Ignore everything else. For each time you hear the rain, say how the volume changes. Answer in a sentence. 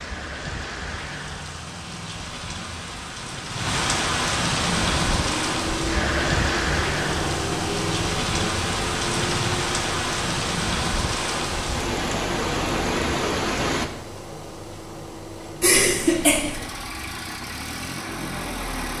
The rain can be heard from 0.0 to 13.9 s, getting louder.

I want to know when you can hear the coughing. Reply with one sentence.
The coughing can be heard from 15.6 to 16.6 s.